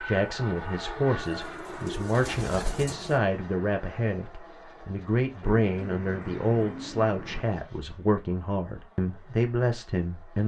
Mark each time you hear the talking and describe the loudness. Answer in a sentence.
The talking can be heard from 0.0 to 10.4 s, at a steady volume.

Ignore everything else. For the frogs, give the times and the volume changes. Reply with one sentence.
The frogs can't be heard in this clip.